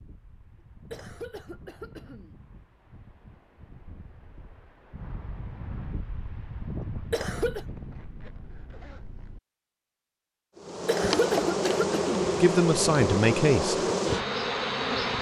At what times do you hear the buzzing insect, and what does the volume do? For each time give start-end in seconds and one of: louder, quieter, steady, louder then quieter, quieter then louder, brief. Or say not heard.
10.6-15.1 steady.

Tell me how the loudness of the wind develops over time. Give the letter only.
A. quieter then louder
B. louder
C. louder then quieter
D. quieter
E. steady
B.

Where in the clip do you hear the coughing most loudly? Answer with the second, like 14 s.
11 s.